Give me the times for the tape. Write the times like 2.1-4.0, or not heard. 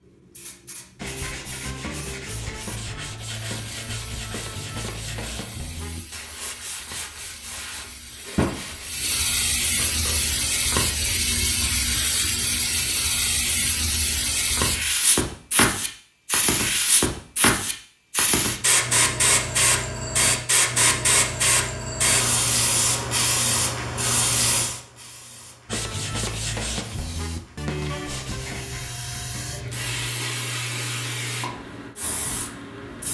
not heard.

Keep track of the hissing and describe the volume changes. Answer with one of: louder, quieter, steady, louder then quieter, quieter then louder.
louder then quieter.